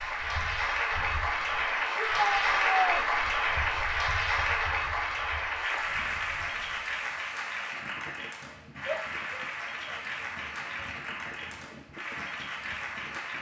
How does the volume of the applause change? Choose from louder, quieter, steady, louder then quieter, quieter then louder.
quieter.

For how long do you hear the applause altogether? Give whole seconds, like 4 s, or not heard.
13 s.